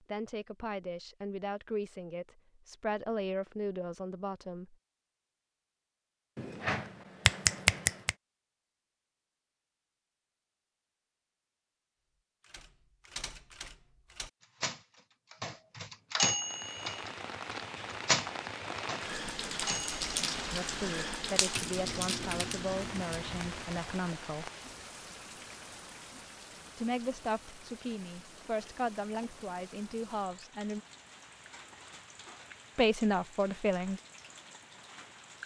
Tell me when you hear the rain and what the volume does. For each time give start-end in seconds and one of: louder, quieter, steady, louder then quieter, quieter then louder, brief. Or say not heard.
16.2-35.4 quieter.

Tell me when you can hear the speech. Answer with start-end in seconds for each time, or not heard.
0.1-4.8, 20.5-24.5, 26.8-30.8, 32.8-34.0.